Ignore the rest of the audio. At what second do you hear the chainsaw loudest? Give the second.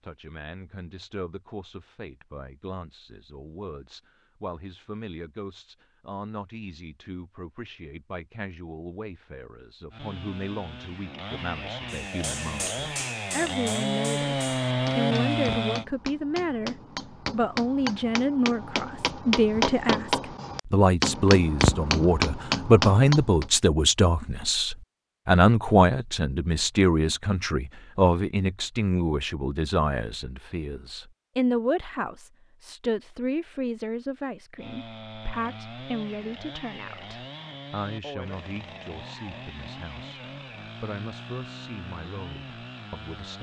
15 s.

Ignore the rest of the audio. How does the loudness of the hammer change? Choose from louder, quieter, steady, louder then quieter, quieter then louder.
louder.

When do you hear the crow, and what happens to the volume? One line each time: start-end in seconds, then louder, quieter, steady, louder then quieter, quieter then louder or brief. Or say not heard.
not heard.